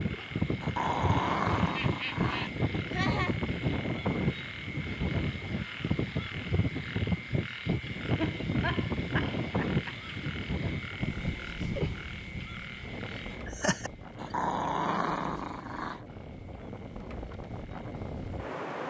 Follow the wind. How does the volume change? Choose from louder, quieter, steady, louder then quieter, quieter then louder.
quieter.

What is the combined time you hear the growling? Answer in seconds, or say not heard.
4 s.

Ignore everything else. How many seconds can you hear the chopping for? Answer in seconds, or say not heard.
not heard.